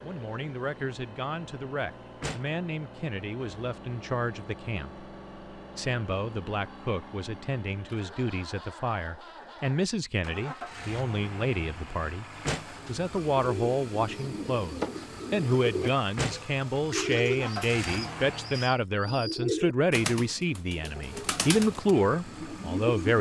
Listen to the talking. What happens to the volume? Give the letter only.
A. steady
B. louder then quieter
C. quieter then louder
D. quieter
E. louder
E.